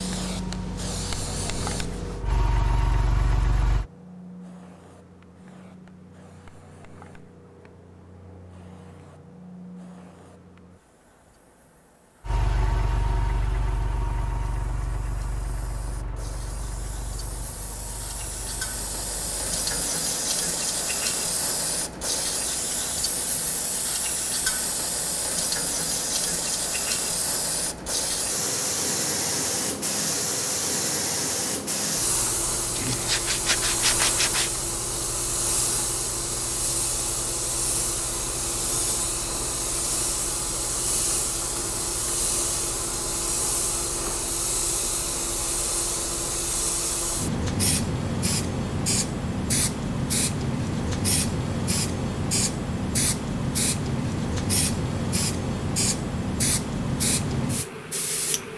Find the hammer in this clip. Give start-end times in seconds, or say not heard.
not heard.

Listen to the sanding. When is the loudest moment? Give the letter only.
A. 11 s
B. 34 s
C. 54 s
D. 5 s
B.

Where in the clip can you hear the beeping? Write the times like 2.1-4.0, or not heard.
not heard.